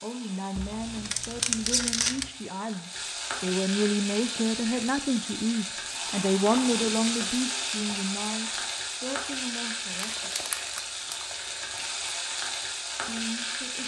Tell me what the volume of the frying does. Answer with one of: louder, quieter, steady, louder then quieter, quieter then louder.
louder.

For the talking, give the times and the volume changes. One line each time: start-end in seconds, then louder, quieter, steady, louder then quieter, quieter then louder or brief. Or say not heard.
0.0-10.3 louder then quieter
13.1-13.8 brief.